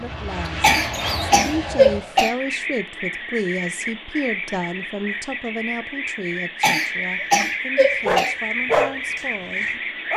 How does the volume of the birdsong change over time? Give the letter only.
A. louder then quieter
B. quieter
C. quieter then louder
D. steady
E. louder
E.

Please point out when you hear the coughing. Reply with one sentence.
You can hear the coughing from 0.6 to 2.3 s and from 6.6 to 8.3 s.